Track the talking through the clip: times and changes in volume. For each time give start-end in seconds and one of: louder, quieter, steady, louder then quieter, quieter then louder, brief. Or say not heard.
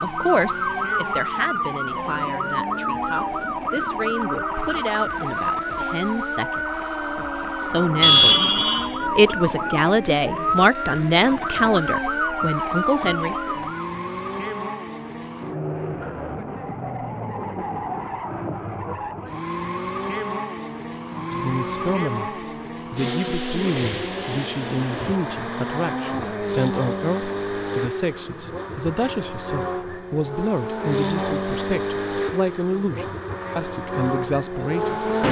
0.0-13.5 louder
21.3-35.2 steady.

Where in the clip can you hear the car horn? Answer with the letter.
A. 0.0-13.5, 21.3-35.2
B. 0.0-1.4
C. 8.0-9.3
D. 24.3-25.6
C.